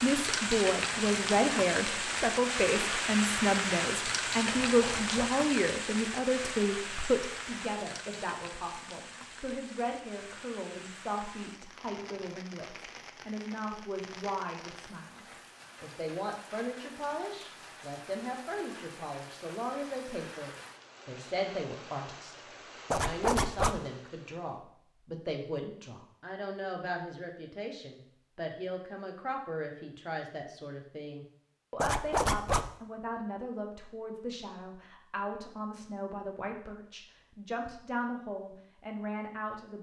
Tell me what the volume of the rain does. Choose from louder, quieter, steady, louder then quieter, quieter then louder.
quieter.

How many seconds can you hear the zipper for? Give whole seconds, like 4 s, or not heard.
3 s.